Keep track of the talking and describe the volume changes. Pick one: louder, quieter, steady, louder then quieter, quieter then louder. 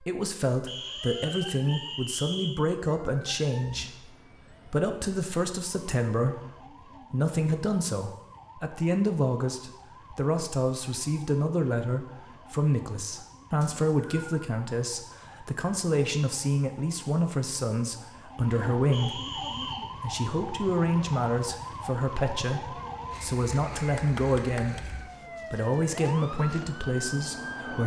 steady.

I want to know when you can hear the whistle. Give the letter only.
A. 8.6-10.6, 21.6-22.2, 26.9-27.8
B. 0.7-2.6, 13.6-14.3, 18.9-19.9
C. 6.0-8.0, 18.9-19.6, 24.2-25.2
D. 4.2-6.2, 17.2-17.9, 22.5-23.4
B.